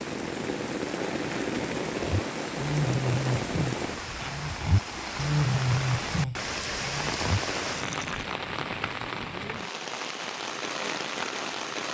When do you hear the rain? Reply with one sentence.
The rain can be heard from 0.0 to 11.9 s.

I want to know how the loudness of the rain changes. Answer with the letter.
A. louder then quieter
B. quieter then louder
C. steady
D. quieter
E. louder
C.